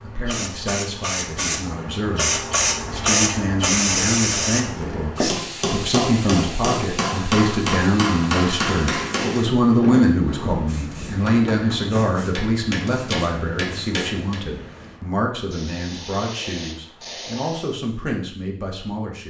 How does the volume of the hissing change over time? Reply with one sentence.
The volume of the hissing goes down.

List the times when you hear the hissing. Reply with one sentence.
The hissing can be heard from 0.0 to 17.8 s.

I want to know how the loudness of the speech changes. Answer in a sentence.
The volume of the speech goes up, then down.